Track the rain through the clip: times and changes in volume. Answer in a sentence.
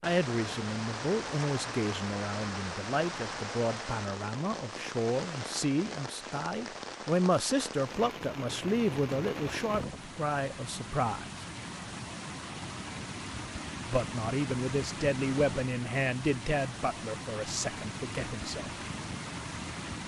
The rain can be heard from 0.0 to 20.0 s, at a steady volume.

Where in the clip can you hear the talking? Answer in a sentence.
The talking can be heard from 0.0 to 11.2 s and from 13.8 to 18.7 s.